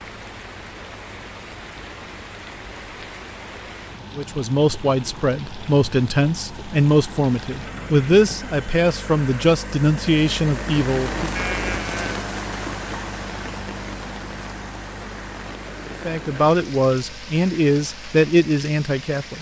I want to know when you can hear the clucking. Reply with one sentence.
You can't hear the clucking here.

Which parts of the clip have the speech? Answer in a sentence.
The speech can be heard from 4.2 to 11.3 s and from 16.1 to 19.3 s.